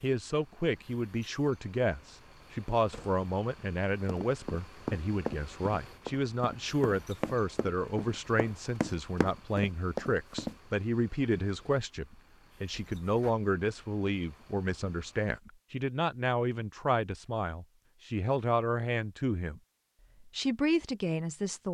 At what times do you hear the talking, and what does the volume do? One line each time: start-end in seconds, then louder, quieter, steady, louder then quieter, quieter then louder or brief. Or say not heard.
0.0-19.6 steady
20.2-21.7 brief.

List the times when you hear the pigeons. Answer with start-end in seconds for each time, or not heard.
not heard.